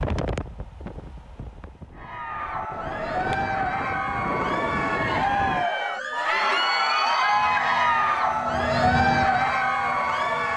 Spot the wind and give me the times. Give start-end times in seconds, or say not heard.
0.0-5.7.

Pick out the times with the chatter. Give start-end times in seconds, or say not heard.
1.9-10.5.